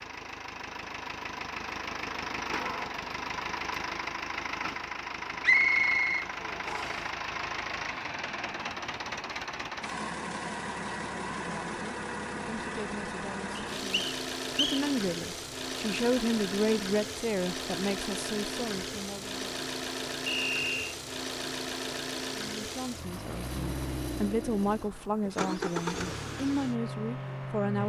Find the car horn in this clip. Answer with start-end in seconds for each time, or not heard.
not heard.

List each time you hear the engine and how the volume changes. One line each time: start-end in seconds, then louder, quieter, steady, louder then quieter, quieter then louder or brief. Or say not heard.
0.0-27.8 steady.